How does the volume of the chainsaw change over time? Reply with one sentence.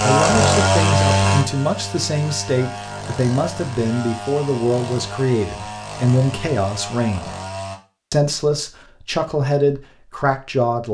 The volume of the chainsaw goes down.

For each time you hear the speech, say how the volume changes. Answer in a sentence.
You can hear the speech from 0.0 to 7.3 s, at a steady volume; and briefly from 8.1 to 10.8 s.